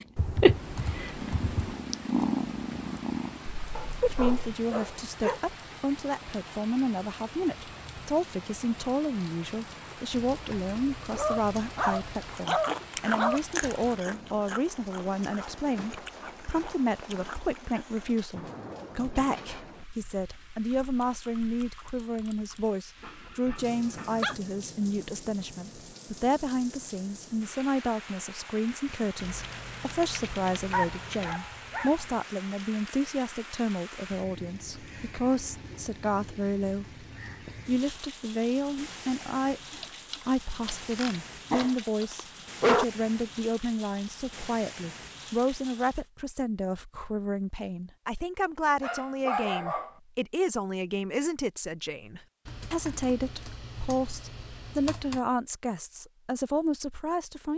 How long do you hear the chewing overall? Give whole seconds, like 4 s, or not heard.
6 s.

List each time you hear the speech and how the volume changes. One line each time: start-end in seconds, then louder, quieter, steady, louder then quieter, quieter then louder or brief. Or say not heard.
4.0-37.0 steady
37.6-57.5 steady.